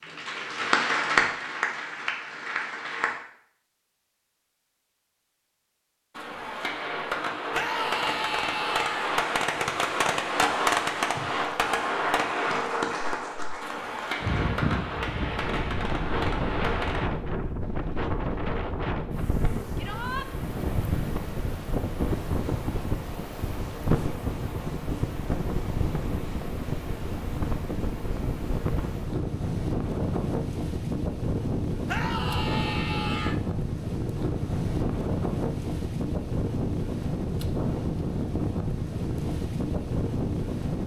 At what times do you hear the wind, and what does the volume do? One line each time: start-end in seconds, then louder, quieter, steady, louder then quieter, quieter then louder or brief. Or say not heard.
14.2-40.8 steady.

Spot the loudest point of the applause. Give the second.
1 s.